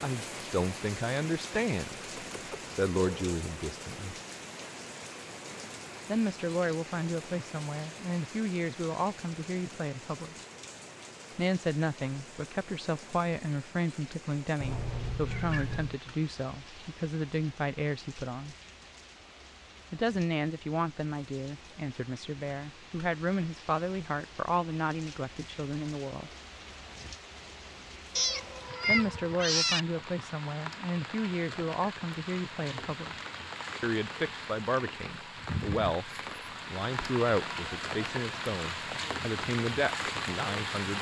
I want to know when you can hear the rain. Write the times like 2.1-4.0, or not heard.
0.0-40.9.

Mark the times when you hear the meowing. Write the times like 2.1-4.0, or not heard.
2.1-3.4, 14.6-16.0, 28.1-29.8.